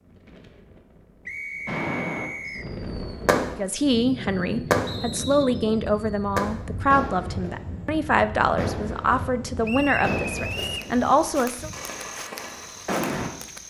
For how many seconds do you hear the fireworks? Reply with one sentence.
You can hear the fireworks for 9 seconds altogether.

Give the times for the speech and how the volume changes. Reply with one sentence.
You can hear the speech from 3.5 to 11.7 s, at a steady volume.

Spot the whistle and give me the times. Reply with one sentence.
You can hear the whistle from 1.2 to 2.6 s, from 4.8 to 5.6 s and from 9.6 to 10.9 s.